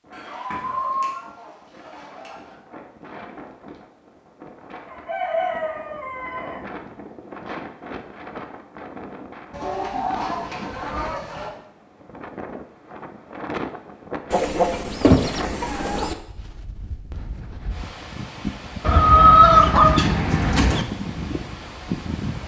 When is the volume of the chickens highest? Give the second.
19 s.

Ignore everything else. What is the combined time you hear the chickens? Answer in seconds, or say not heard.
10 s.